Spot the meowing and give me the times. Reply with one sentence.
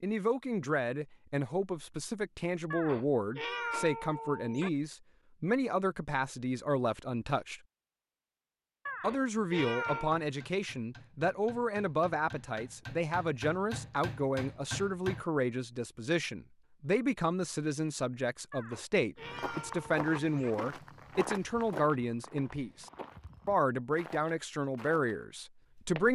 You can hear the meowing from 2.7 to 4.7 s, from 8.8 to 10.2 s and from 18.5 to 20.6 s.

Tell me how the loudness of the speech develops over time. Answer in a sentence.
The volume of the speech stays about the same.